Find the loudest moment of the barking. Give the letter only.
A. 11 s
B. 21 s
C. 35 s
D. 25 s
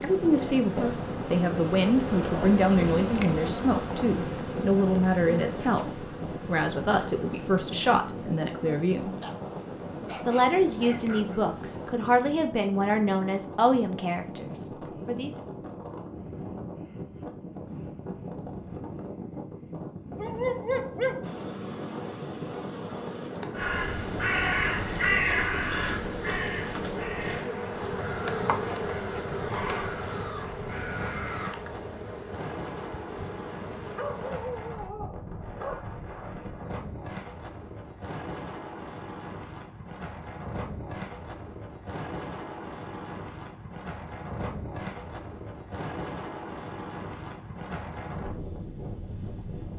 B.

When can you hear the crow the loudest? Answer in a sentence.
The volume of the crow peaks at 25 seconds.